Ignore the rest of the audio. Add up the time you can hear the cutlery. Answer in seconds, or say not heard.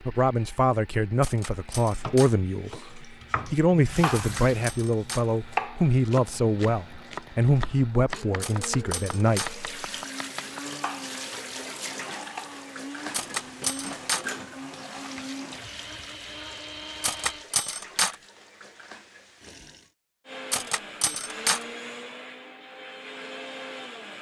7 s.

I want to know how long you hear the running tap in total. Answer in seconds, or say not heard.
14 s.